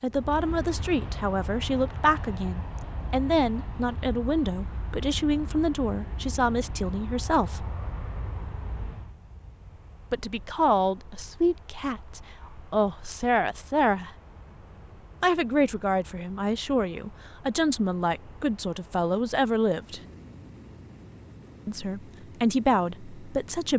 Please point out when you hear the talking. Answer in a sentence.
You can hear the talking from 0.0 to 7.7 s, from 10.1 to 14.2 s, from 15.2 to 20.0 s and from 21.6 to 23.7 s.